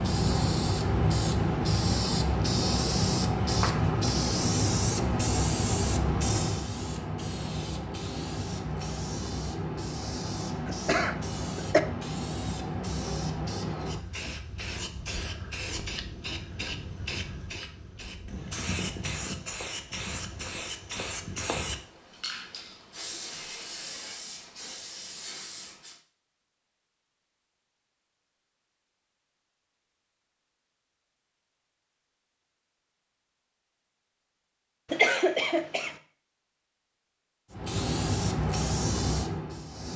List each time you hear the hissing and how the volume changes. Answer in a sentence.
You can hear the hissing from 0.0 to 26.0 s, getting quieter; and briefly from 37.5 to 39.9 s.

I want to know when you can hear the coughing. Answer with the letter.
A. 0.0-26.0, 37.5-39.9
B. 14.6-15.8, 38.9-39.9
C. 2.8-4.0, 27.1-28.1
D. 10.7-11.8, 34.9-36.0
D.